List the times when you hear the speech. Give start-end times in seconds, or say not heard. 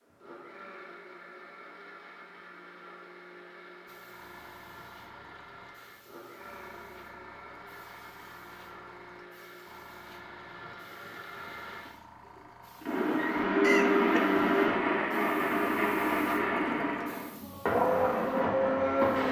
not heard.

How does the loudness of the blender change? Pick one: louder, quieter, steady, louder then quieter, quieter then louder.
louder.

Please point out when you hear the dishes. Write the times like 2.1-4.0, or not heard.
not heard.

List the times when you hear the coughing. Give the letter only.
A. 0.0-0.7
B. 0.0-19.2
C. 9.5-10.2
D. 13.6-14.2
D.